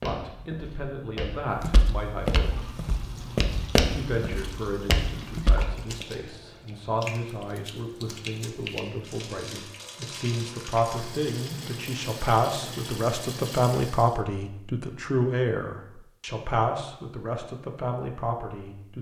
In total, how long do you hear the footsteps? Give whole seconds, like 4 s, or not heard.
6 s.